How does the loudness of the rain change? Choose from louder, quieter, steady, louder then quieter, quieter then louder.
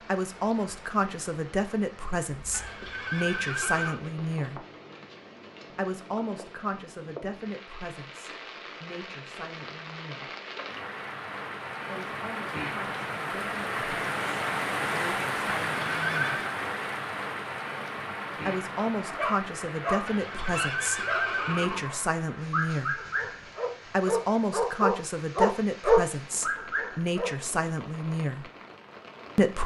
louder then quieter.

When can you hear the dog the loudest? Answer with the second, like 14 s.
26 s.